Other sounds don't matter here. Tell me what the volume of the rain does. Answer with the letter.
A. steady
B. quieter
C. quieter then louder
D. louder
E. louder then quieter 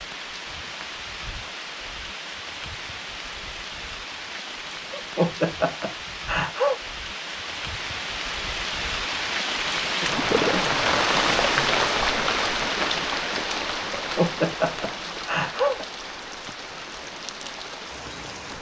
E.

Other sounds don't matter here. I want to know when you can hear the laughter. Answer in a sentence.
You can hear the laughter from 4.9 to 6.8 s and from 13.9 to 15.8 s.